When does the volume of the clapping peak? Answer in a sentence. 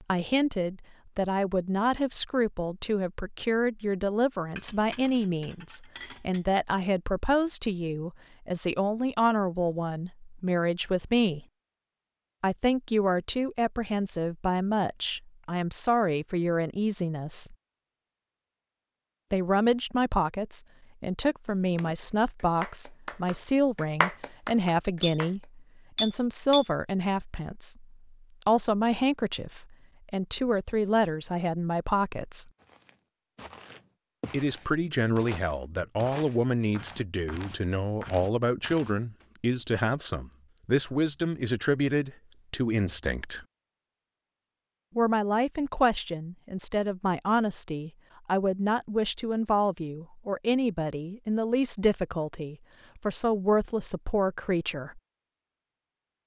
The loudest moment of the clapping is at 24 seconds.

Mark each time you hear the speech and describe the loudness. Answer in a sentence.
The speech can be heard from 0.0 to 11.4 s, at a steady volume; from 12.4 to 17.6 s, at a steady volume; from 19.3 to 32.5 s, at a steady volume; from 34.3 to 43.5 s, at a steady volume; and from 45.0 to 55.0 s, at a steady volume.